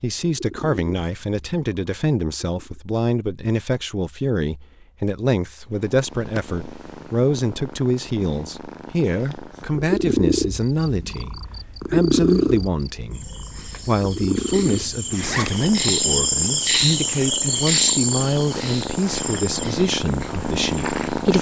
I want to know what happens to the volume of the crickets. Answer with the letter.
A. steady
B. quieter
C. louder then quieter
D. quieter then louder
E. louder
C.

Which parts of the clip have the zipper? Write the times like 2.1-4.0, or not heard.
14.7-15.6.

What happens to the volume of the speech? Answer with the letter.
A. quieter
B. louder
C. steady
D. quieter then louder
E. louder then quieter
C.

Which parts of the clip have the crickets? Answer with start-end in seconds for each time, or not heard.
10.7-21.3.